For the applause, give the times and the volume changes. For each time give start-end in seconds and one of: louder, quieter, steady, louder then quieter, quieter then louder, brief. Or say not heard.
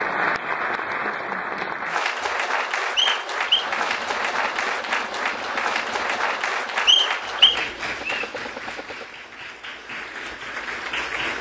0.0-11.3 quieter.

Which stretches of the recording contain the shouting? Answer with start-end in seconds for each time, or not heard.
not heard.